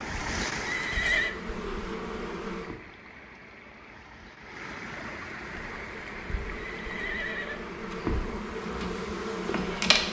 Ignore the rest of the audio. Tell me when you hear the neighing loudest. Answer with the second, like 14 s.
1 s.